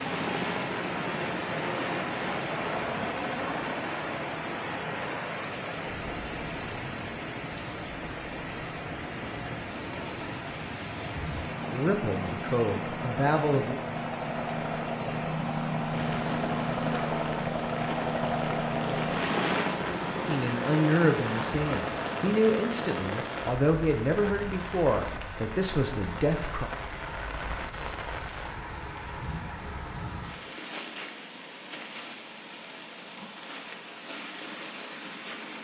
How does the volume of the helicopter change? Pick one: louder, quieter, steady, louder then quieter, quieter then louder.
quieter then louder.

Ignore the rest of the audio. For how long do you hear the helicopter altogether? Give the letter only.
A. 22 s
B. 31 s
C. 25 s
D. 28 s
A.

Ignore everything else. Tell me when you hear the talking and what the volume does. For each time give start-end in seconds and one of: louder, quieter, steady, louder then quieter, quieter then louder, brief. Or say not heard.
11.7-13.8 brief
20.2-26.7 steady.